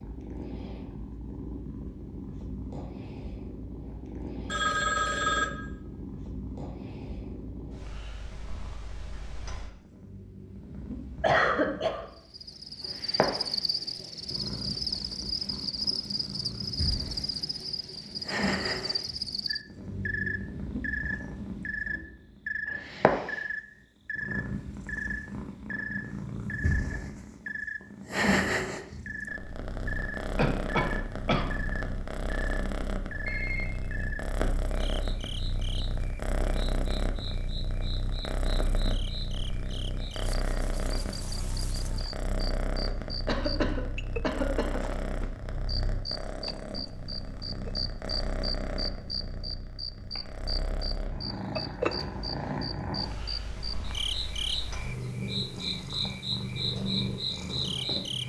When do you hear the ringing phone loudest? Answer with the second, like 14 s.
5 s.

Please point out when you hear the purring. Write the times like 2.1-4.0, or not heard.
0.0-58.2.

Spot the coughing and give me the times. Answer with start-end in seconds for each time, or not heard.
11.2-12.1, 30.4-31.5, 43.2-44.8.